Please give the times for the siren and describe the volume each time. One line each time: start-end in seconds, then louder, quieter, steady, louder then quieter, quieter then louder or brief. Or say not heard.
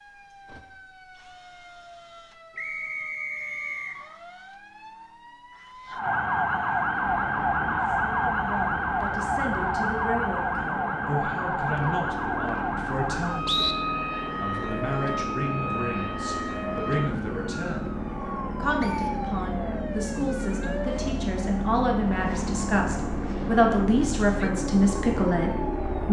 0.0-26.0 louder then quieter.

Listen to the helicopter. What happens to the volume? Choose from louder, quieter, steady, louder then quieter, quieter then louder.
louder.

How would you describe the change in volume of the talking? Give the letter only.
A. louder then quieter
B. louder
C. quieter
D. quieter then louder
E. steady
B.